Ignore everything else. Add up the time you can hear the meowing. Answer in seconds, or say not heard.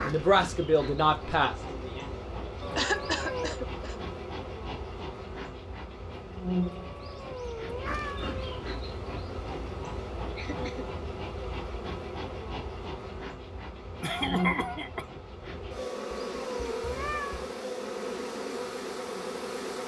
5 s.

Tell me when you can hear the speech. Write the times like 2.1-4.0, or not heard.
0.0-2.1.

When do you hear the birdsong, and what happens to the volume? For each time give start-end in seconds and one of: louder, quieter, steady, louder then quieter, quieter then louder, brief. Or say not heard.
not heard.